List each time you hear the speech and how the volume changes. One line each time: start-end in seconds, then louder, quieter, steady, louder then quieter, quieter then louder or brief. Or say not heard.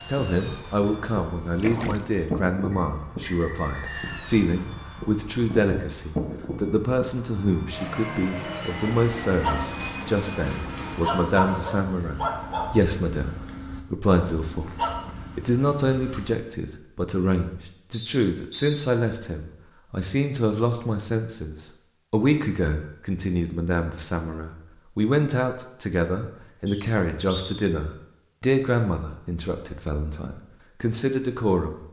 0.1-31.8 steady.